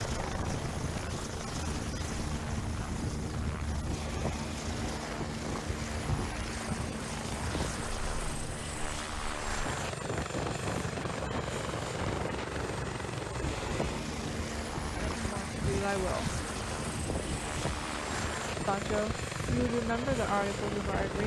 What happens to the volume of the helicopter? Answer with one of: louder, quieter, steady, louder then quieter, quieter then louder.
steady.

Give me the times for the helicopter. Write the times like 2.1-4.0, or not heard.
0.0-21.2.